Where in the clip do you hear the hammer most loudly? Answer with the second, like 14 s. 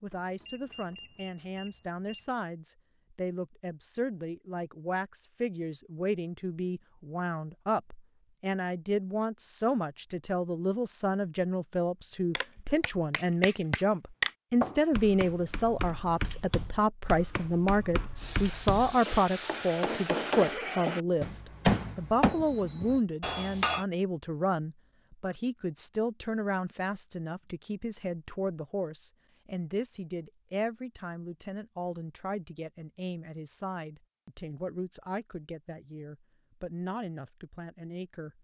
22 s.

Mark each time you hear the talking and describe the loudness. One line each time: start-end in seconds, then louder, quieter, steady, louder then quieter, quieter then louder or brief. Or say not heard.
0.0-38.3 louder then quieter.